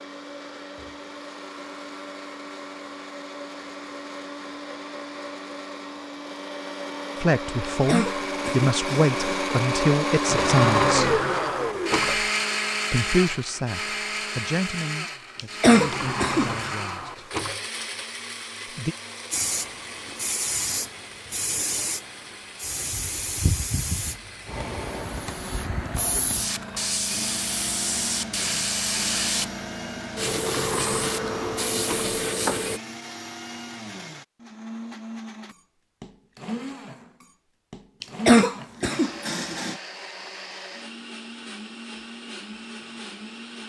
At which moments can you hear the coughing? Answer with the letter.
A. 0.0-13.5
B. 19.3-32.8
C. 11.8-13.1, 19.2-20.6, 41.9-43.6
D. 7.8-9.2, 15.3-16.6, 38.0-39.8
D.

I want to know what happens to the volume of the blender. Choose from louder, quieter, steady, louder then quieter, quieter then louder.
louder then quieter.